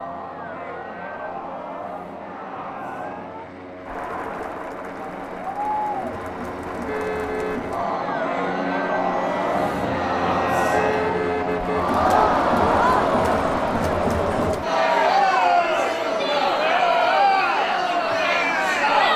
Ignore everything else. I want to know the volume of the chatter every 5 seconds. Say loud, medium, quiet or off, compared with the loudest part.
quiet, medium, loud, loud.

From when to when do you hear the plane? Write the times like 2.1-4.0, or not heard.
0.0-19.1.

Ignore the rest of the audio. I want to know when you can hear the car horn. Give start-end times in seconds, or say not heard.
6.8-7.8, 10.7-11.8.